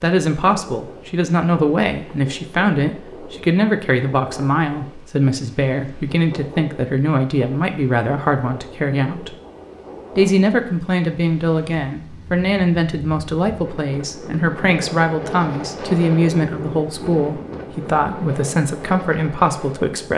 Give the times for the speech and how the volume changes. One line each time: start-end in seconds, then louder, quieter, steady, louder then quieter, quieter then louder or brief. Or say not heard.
0.0-9.3 steady
10.2-20.1 steady.